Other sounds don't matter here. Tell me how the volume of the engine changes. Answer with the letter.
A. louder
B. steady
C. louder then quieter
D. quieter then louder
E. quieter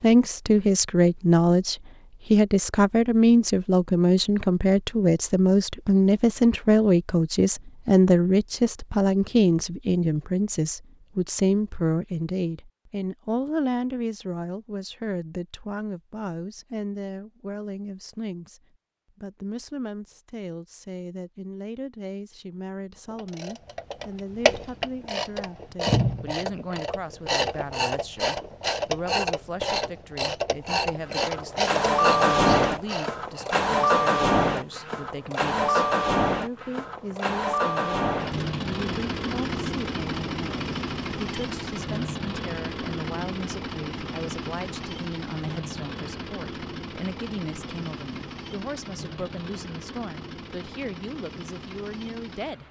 E.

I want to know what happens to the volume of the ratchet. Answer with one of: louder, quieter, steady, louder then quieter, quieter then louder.
steady.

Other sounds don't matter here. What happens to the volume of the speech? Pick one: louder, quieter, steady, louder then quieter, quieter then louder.
quieter.